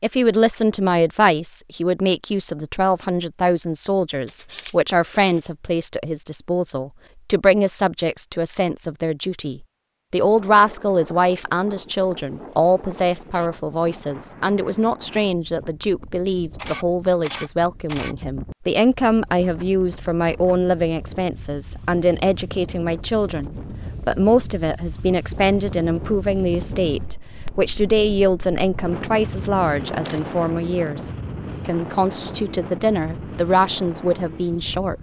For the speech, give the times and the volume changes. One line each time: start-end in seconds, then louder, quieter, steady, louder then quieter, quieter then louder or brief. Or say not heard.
0.0-34.9 steady.